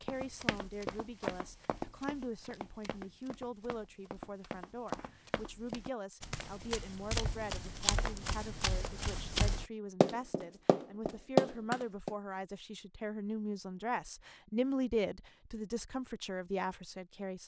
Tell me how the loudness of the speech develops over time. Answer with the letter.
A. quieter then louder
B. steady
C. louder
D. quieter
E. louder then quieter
C.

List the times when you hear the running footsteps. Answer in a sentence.
The running footsteps can be heard from 0.1 to 12.1 s.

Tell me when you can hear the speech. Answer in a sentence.
You can hear the speech from 0.0 to 17.4 s.